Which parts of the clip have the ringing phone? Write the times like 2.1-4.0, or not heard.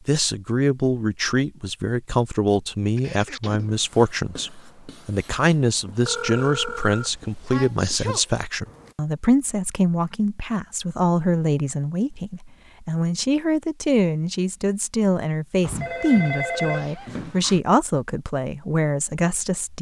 6.0-7.5, 15.6-17.6.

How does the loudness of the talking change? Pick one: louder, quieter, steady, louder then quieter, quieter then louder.
steady.